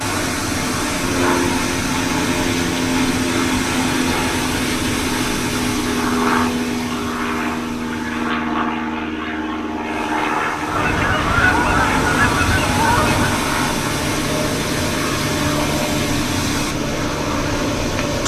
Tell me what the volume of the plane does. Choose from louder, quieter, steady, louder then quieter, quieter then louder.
steady.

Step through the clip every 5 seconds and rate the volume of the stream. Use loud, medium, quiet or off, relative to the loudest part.
loud, medium, loud, loud.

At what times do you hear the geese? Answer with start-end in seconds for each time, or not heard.
10.7-13.3.